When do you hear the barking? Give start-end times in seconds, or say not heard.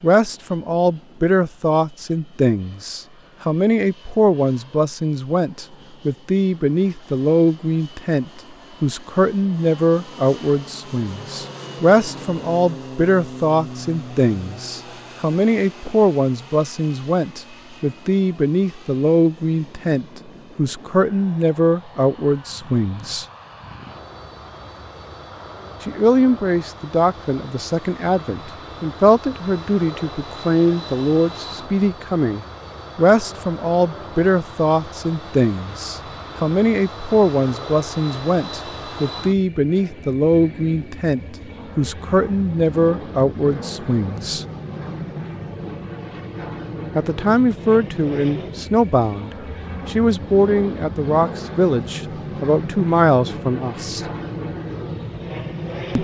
not heard.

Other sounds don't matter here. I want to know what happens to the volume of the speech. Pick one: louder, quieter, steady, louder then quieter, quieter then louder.
steady.